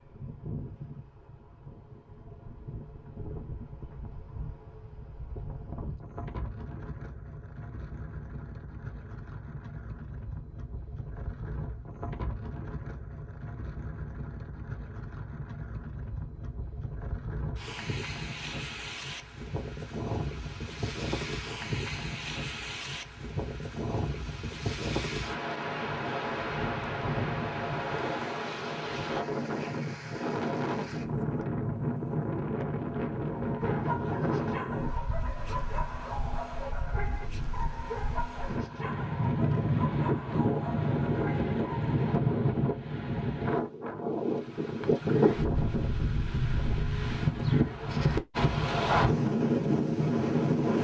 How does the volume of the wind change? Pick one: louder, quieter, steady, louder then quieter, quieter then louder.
louder.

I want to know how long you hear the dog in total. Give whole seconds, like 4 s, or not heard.
9 s.